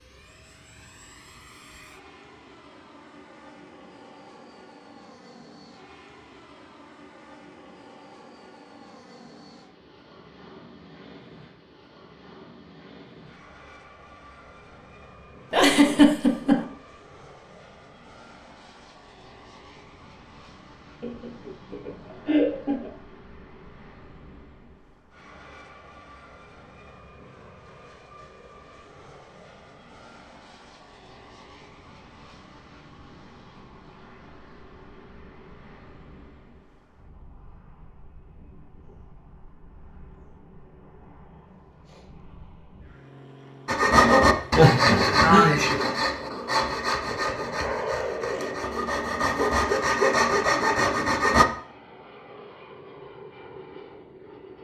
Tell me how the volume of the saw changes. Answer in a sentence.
The loudness of the saw goes down, then up.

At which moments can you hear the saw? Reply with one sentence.
The saw can be heard from 43.6 to 51.5 s.